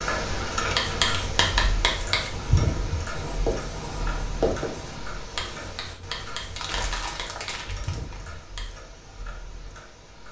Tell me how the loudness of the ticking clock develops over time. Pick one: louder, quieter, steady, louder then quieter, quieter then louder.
quieter.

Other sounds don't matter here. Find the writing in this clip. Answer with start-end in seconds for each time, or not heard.
0.7-8.8.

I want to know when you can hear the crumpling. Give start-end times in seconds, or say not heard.
0.6-1.4, 6.5-8.2.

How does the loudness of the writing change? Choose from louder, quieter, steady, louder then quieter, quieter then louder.
quieter.